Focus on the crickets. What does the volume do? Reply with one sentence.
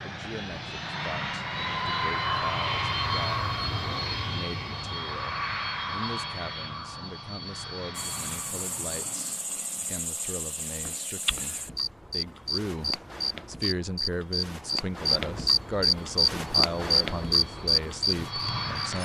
The volume of the crickets goes up.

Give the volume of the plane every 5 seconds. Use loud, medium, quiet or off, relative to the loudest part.
loud, medium, off, medium.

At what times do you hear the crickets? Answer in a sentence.
You can hear the crickets from 8.0 to 19.0 s.